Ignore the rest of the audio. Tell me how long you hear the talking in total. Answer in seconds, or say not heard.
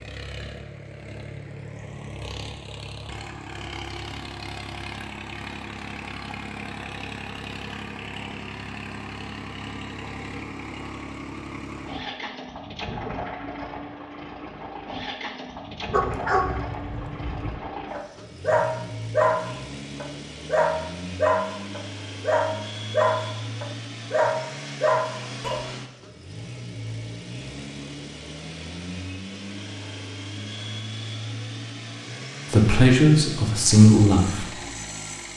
2 s.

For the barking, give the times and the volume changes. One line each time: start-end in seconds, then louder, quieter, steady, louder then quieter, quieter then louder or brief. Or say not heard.
15.9-25.6 louder.